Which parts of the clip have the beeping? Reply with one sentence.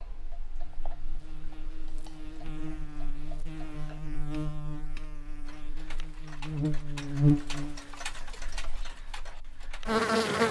The beeping can't be heard in this clip.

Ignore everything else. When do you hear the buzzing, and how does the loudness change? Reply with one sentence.
You can hear the buzzing from 0.0 to 10.4 s, getting louder then quieter.